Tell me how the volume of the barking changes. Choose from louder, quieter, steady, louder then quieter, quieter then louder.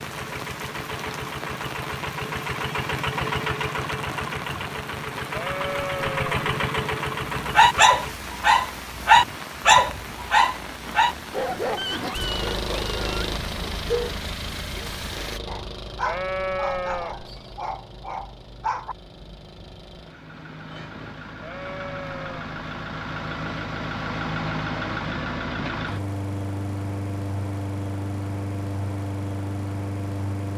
quieter.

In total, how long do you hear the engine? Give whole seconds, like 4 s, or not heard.
27 s.